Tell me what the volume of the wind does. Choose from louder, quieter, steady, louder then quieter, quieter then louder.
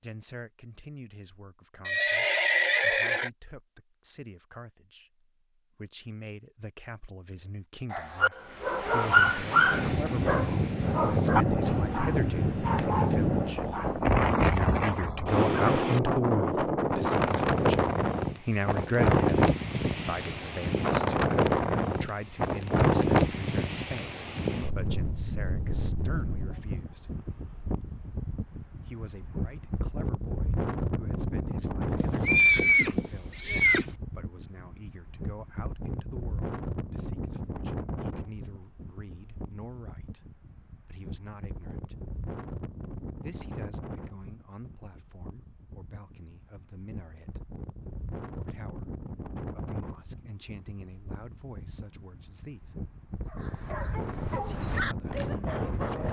quieter.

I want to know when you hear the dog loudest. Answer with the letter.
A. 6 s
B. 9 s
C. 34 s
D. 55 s
B.